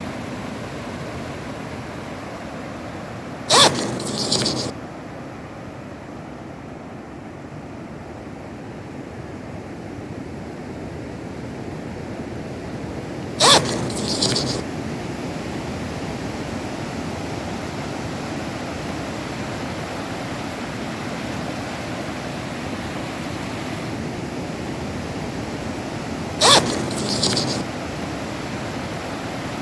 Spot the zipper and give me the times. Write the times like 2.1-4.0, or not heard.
3.5-4.7, 13.3-14.6, 26.4-27.6.